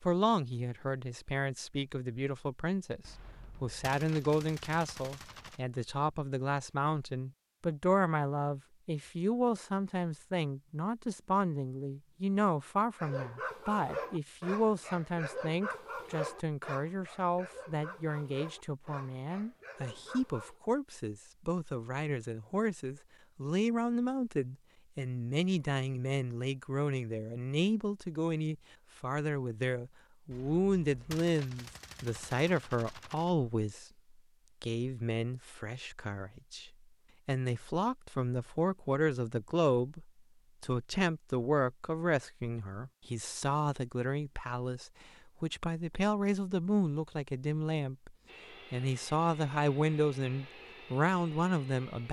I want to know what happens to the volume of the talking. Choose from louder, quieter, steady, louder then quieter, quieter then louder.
steady.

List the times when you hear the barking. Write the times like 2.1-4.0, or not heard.
12.9-20.6.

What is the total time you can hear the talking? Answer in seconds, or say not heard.
51 s.